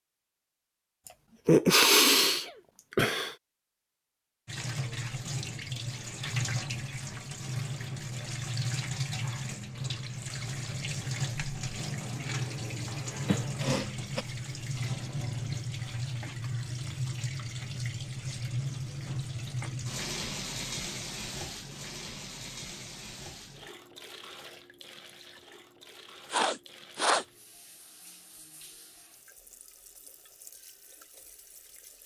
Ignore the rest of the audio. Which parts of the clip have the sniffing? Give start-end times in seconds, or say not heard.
1.4-3.4, 13.2-14.2, 26.3-27.2.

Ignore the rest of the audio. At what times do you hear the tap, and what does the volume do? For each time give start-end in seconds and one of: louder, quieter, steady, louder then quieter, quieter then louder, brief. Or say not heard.
4.5-32.0 quieter.